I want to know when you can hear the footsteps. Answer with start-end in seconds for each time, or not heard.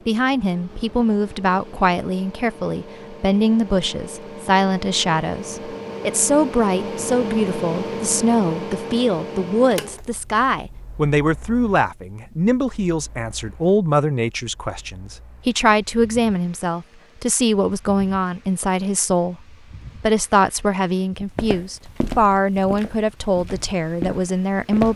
21.4-24.9.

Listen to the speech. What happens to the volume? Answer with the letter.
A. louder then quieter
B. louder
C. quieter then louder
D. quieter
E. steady
E.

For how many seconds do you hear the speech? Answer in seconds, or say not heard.
24 s.